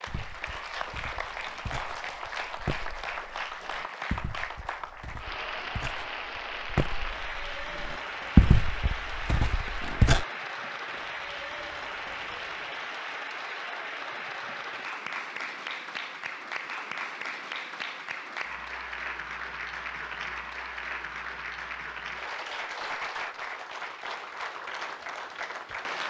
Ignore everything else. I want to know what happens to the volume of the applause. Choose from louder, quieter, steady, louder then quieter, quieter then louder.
steady.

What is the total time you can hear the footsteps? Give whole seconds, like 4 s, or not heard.
10 s.